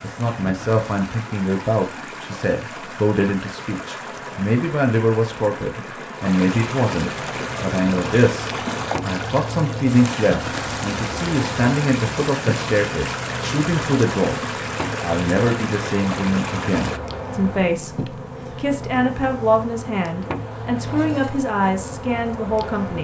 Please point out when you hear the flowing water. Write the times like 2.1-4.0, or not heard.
0.0-17.0.